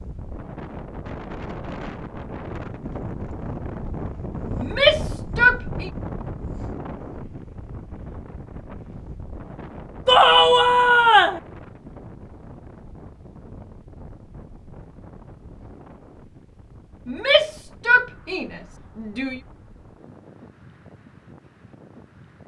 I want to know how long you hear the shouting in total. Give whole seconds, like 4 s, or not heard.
5 s.